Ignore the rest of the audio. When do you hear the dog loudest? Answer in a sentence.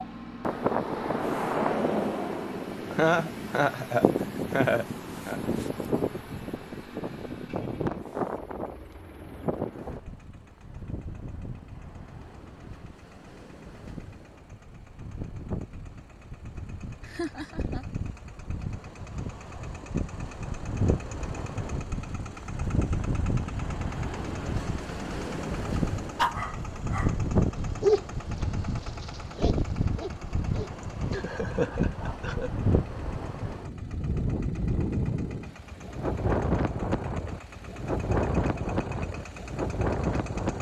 The loudest moment of the dog is at 28 seconds.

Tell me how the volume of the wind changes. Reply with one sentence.
The loudness of the wind goes down, then up.